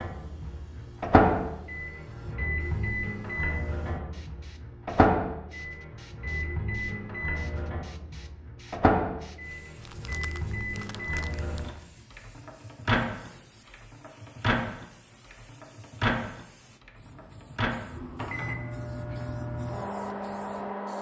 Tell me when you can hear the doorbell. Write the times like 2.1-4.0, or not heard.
not heard.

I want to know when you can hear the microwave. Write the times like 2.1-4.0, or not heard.
0.0-20.9.